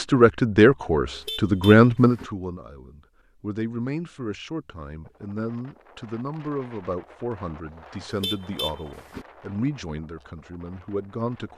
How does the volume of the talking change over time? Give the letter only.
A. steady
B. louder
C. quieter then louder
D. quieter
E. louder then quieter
D.